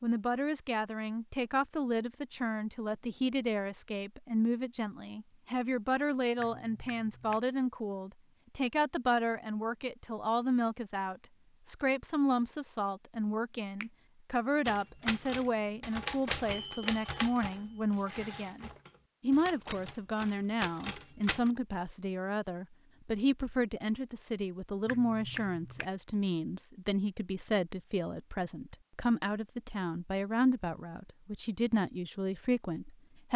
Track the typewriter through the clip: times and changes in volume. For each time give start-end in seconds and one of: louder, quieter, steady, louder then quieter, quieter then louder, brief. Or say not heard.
14.7-21.5 quieter then louder.